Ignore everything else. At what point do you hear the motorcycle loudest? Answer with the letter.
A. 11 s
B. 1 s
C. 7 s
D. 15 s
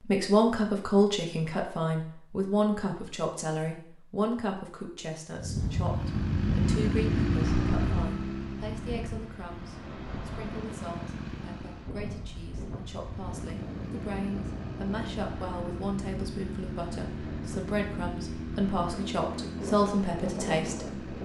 C.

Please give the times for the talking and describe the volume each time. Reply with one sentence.
The talking can be heard from 0.0 to 21.1 s, getting quieter then louder.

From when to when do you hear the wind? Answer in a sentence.
The wind can be heard from 5.3 to 21.2 s.